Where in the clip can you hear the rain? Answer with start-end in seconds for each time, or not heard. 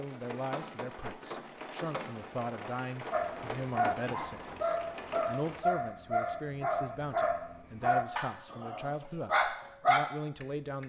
0.0-5.6.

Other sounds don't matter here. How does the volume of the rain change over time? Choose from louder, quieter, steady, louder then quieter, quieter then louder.
steady.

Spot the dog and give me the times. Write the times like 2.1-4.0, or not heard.
3.1-10.8.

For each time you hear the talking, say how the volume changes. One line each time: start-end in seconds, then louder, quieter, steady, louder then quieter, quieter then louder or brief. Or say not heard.
0.0-10.8 steady.